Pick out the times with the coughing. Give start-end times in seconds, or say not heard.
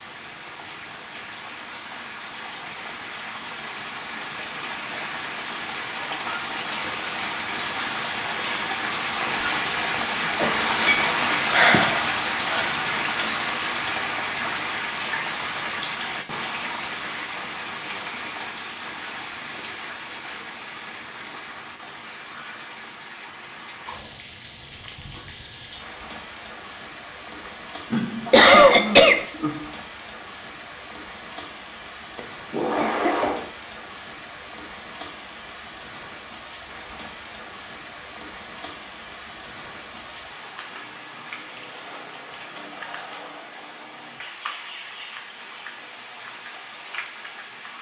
9.8-10.8, 28.2-29.2, 32.8-33.4.